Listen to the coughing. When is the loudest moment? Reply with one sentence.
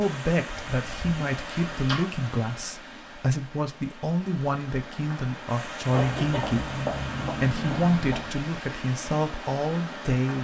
The loudest moment of the coughing is at 7 seconds.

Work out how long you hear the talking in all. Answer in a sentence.
You can hear the talking for 10 seconds altogether.